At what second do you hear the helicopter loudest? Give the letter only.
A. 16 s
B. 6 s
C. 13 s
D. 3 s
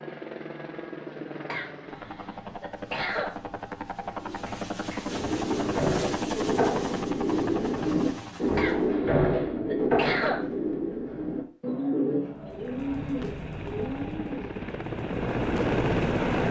A.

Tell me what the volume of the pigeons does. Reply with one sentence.
The volume of the pigeons goes up, then down.